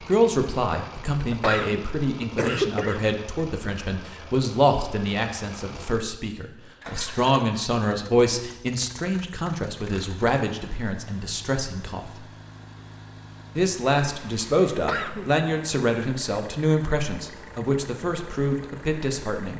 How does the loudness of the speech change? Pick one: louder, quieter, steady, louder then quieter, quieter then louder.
steady.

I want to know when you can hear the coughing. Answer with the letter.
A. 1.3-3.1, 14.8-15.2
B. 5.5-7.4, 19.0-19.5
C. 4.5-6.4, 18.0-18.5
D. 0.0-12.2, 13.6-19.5
A.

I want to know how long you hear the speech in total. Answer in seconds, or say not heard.
18 s.